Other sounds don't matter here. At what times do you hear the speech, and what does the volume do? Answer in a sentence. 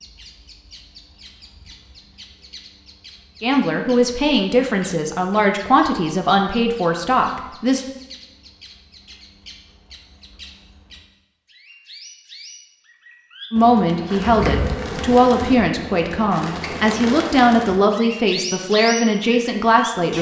You can hear the speech from 3.4 to 7.8 s, at a steady volume; and from 13.5 to 20.1 s, at a steady volume.